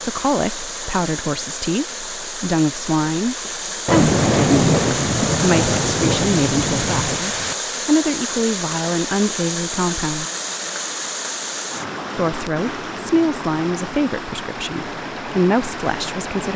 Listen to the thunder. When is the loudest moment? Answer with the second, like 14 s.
4 s.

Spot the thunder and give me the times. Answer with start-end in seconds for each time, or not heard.
3.9-7.5.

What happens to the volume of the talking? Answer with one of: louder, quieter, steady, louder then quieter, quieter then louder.
steady.